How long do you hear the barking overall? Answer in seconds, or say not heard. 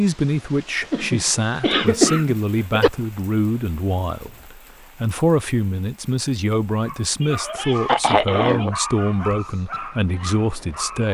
4 s.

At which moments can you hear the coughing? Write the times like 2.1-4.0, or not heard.
0.9-2.9, 7.2-8.8.